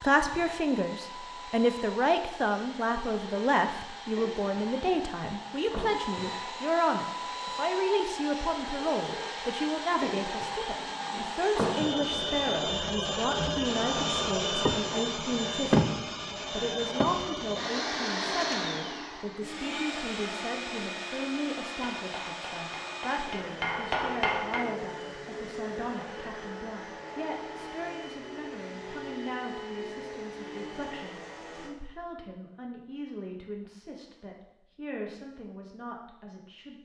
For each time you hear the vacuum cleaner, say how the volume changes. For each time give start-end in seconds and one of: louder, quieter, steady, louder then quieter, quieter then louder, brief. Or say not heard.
0.0-31.7 louder then quieter.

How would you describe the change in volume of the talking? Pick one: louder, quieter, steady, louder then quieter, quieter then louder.
quieter.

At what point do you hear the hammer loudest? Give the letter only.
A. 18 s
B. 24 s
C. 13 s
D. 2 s
B.